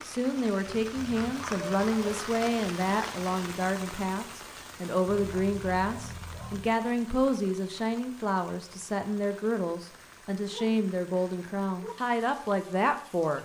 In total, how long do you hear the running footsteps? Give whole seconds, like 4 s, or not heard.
not heard.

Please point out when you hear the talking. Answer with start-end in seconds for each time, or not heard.
0.0-13.4.